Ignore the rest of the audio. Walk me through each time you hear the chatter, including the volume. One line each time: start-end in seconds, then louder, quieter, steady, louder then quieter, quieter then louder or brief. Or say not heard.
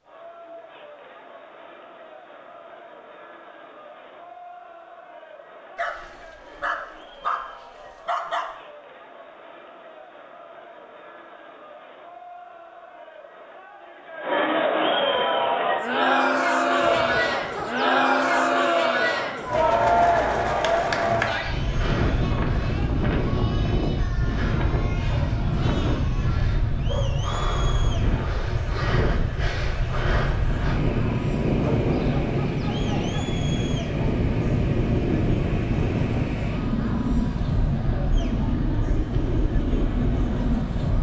0.0-40.9 louder then quieter.